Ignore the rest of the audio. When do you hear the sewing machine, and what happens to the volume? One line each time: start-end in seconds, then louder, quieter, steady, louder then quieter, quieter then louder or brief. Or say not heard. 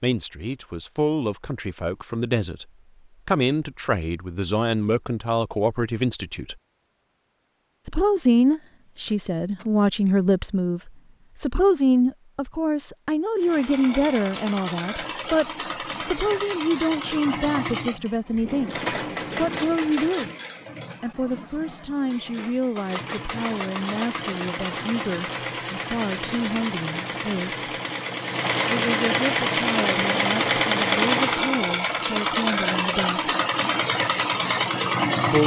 13.4-35.4 louder.